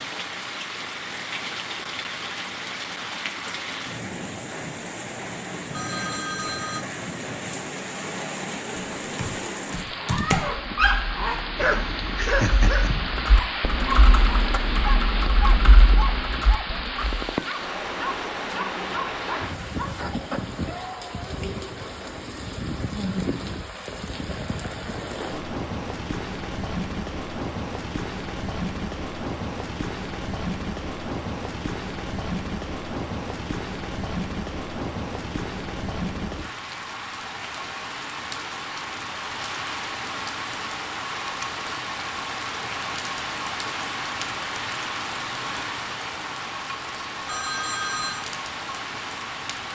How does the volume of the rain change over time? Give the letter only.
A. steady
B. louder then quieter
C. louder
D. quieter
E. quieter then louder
A.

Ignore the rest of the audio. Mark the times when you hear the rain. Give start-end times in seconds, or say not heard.
0.0-49.7.